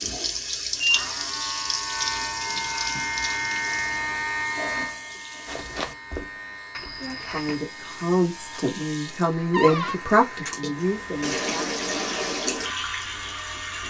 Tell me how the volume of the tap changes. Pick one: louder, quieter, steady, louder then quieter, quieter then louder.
quieter then louder.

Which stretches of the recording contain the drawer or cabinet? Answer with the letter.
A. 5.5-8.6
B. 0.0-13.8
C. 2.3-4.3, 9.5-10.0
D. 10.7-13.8
C.